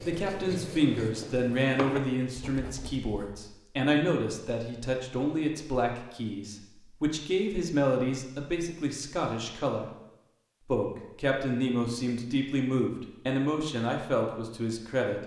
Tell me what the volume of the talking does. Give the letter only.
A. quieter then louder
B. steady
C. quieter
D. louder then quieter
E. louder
B.